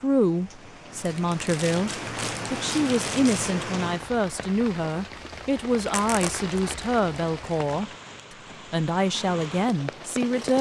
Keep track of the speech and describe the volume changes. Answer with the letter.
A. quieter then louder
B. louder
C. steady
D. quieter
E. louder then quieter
C.